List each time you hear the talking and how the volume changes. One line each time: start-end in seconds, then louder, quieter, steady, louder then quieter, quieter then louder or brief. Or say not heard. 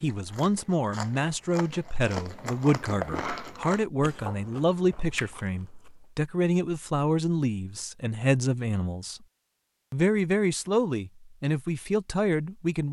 0.0-9.2 steady
9.9-12.8 brief.